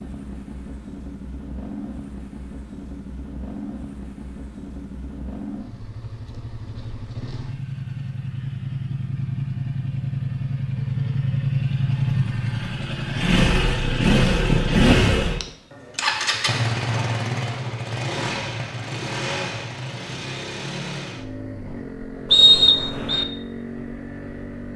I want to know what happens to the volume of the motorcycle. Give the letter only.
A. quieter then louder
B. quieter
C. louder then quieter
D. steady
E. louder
C.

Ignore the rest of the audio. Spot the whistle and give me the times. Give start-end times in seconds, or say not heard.
22.3-23.2.